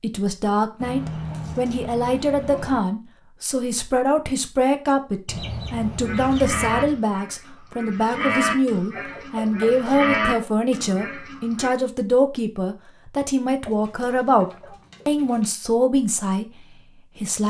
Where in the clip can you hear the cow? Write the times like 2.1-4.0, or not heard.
6.0-11.7.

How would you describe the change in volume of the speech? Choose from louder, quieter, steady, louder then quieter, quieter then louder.
steady.